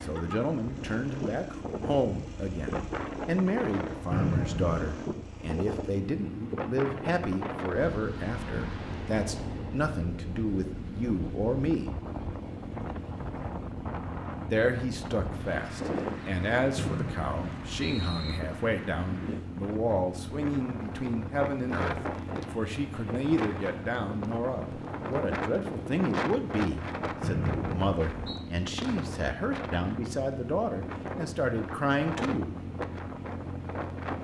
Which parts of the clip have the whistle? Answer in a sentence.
The whistle can be heard from 4.1 to 5.0 s, from 16.8 to 18.4 s and from 27.2 to 28.4 s.